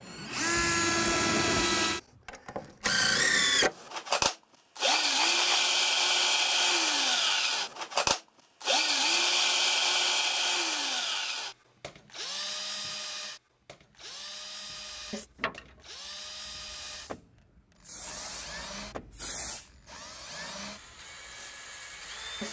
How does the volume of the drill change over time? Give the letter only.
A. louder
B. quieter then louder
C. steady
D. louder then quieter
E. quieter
E.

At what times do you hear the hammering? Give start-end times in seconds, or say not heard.
not heard.